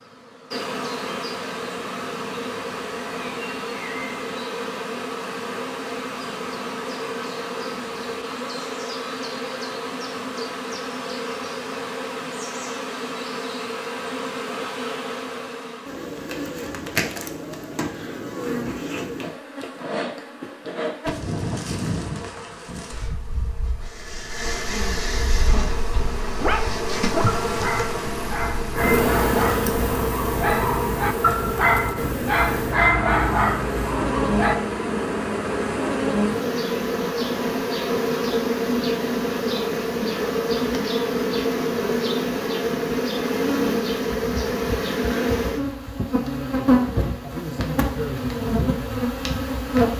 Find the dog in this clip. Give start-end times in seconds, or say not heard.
25.5-34.5.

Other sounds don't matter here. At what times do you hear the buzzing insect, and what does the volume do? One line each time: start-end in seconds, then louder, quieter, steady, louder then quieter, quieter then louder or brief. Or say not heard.
0.0-49.9 louder.